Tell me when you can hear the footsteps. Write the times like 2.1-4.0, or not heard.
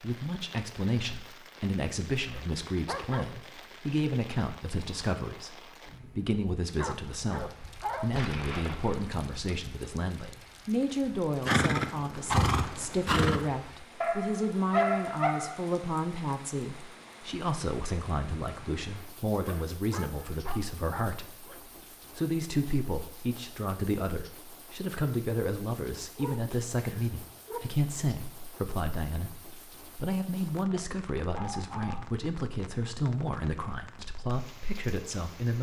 not heard.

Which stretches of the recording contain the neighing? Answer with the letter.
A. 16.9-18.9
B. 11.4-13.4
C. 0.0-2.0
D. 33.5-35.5
B.